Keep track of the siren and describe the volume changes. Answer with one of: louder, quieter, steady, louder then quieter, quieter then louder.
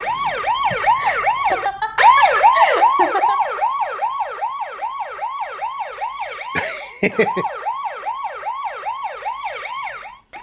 quieter.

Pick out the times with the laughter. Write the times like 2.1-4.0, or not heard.
0.7-3.4, 6.5-7.5.